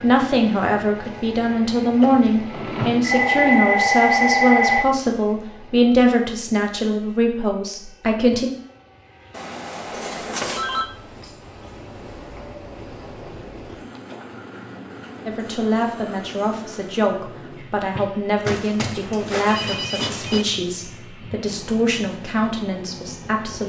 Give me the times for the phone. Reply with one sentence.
You can hear the phone from 3.0 to 4.8 s, from 9.3 to 10.8 s and from 18.4 to 20.4 s.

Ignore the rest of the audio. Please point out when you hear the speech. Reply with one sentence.
The speech can be heard from 0.0 to 8.5 s and from 15.2 to 23.6 s.